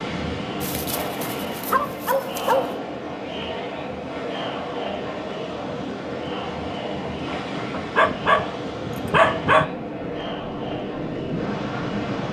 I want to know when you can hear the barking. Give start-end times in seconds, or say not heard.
0.6-2.7, 7.8-9.7.